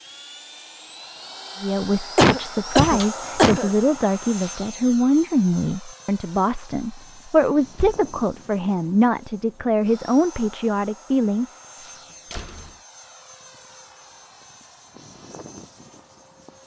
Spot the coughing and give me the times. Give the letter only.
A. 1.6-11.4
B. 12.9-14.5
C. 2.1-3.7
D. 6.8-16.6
C.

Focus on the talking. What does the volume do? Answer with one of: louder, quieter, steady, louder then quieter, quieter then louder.
steady.